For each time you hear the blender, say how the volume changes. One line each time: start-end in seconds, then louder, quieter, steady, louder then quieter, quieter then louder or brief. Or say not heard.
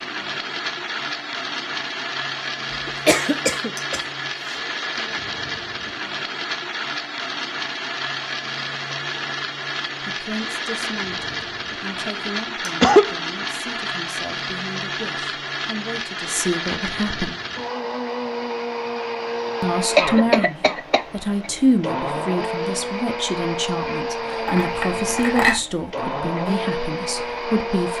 0.0-27.9 steady.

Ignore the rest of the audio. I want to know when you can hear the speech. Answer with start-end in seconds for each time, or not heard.
10.0-17.4, 19.6-27.9.